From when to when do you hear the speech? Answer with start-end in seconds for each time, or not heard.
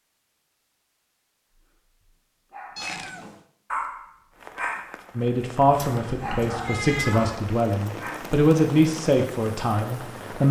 5.2-10.4.